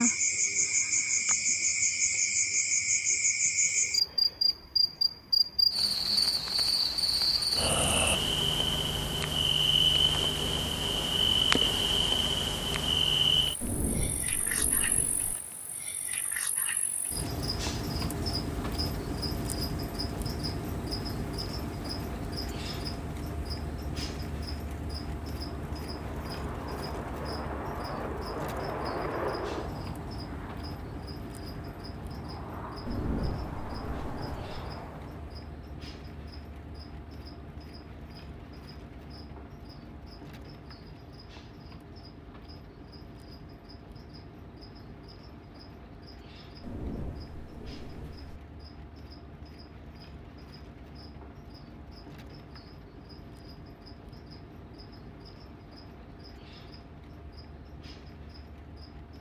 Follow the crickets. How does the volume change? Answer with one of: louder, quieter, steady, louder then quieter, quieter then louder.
quieter.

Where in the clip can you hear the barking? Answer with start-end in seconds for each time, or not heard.
not heard.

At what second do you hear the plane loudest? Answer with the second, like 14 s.
29 s.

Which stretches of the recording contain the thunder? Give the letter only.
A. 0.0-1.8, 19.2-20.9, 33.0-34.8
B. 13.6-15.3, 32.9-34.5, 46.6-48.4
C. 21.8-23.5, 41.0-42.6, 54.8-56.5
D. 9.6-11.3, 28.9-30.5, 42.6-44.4
B.